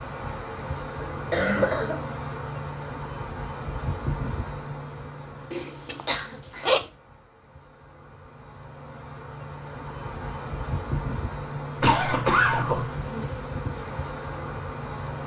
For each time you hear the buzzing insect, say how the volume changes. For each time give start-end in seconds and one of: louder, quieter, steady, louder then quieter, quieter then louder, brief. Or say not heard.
0.0-15.2 quieter then louder.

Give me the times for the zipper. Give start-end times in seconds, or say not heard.
5.5-6.9.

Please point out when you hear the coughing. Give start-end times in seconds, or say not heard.
1.1-2.0, 6.0-6.8, 11.8-12.9.